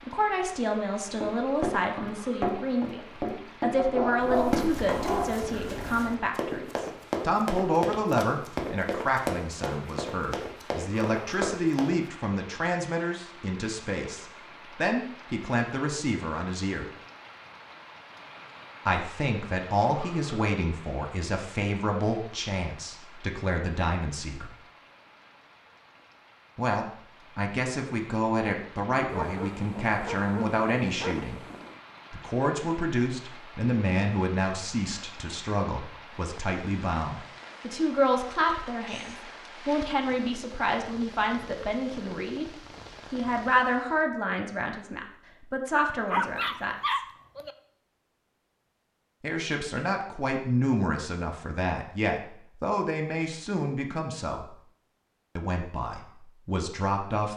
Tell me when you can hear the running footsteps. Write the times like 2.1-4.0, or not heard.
1.2-11.9.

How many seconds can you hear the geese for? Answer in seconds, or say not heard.
not heard.